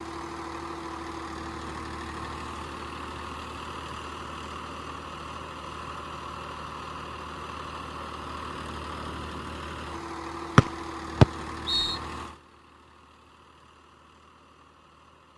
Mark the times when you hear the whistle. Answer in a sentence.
The whistle can be heard from 10.6 to 11.9 s.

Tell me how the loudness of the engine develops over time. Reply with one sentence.
The loudness of the engine goes down.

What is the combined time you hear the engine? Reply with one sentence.
The engine can be heard for 15 seconds in total.